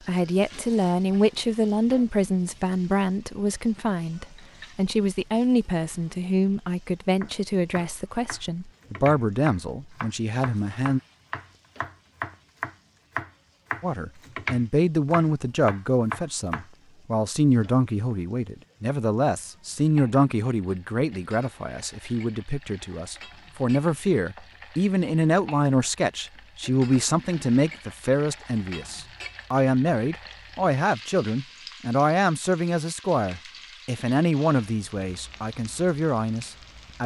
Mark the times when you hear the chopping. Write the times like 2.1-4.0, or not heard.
7.2-16.6.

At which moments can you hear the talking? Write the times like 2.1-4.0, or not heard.
0.1-11.0, 13.8-37.0.